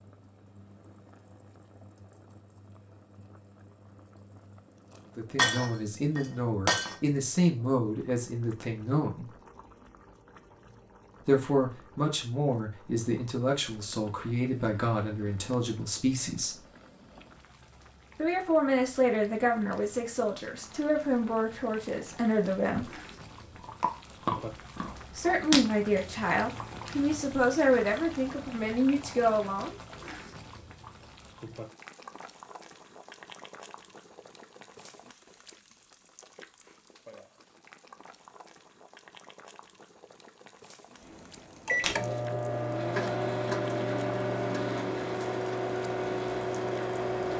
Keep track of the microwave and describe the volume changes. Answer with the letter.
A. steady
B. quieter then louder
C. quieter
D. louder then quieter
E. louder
A.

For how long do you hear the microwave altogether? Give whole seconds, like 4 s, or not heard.
6 s.